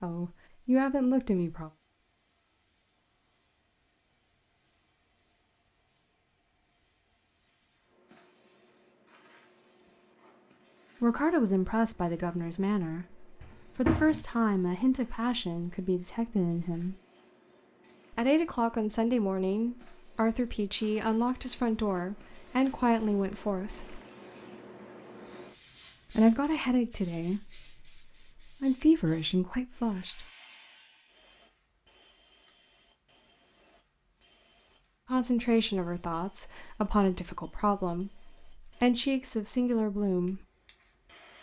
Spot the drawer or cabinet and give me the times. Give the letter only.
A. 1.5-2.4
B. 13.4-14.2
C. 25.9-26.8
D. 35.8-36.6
B.